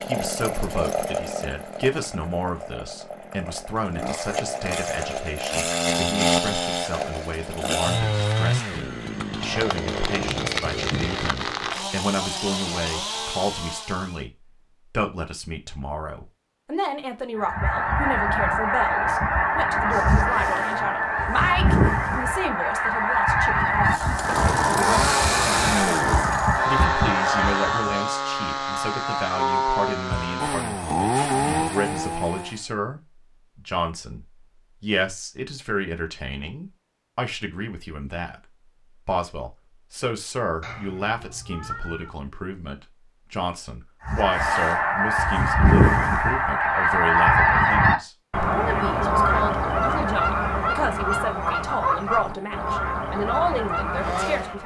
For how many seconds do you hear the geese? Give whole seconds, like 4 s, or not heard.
21 s.